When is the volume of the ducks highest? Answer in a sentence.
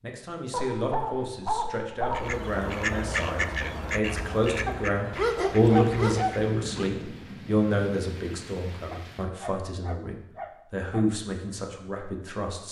The loudest moment of the ducks is at 3 seconds.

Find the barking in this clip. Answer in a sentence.
You can hear the barking from 0.5 to 2.4 s, from 4.7 to 6.9 s and from 8.9 to 11.1 s.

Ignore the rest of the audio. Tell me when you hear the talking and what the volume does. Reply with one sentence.
You can hear the talking from 0.0 to 12.6 s, getting louder then quieter.